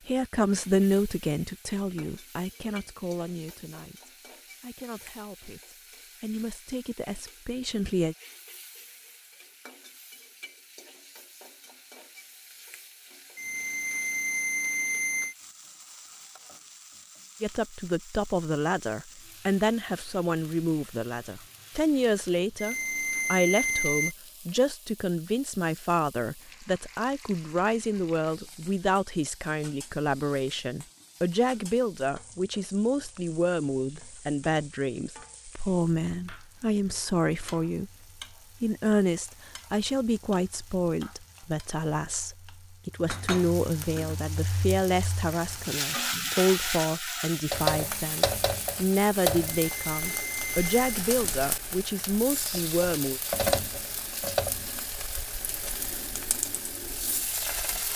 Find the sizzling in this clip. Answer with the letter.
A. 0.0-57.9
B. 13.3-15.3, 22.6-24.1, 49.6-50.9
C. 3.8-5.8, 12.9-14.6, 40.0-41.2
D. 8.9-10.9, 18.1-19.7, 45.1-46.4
A.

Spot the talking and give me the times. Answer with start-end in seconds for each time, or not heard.
0.1-8.2, 17.4-37.9, 38.6-53.2.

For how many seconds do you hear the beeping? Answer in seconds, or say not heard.
5 s.